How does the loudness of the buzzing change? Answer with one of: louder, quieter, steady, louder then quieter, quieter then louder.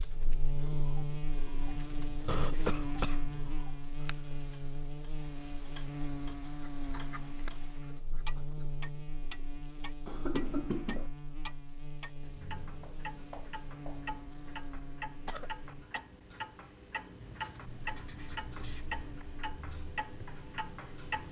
quieter.